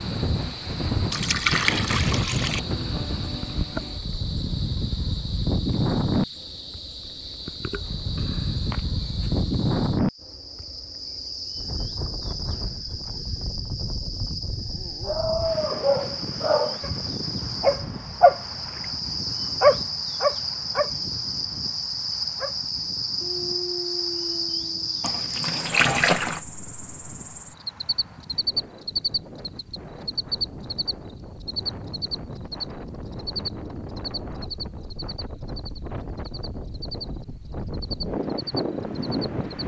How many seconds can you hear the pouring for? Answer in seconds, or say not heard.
3 s.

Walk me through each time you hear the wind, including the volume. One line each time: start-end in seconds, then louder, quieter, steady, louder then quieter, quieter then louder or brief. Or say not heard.
0.0-39.6 quieter then louder.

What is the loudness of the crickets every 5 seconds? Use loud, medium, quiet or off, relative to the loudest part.
medium, medium, medium, loud, loud, loud, loud, medium.